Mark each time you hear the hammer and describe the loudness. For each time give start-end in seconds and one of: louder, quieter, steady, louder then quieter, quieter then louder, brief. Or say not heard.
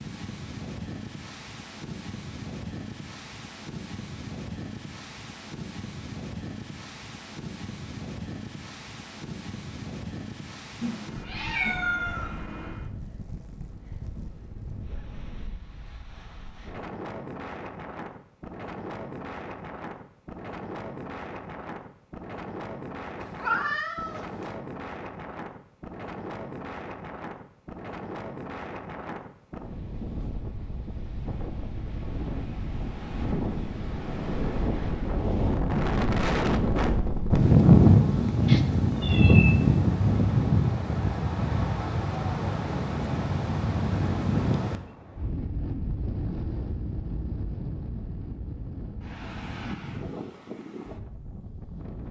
not heard.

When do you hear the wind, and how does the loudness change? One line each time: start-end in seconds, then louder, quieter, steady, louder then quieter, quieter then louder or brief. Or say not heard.
0.0-52.0 louder then quieter.